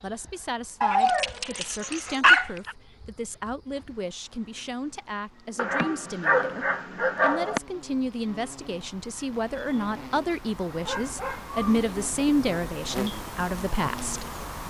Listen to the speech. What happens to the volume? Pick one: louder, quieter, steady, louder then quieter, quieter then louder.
louder.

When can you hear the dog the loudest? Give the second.
2 s.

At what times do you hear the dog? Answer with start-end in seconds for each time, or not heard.
0.8-2.8, 5.5-7.6, 10.8-12.3.